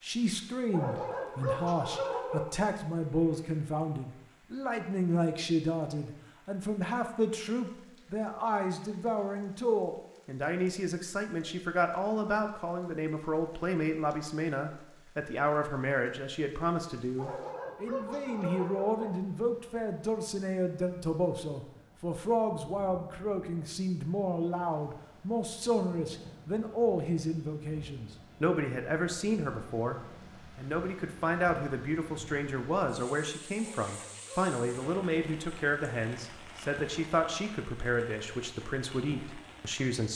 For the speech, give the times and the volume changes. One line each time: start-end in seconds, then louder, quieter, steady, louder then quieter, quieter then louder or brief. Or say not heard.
0.0-40.1 steady.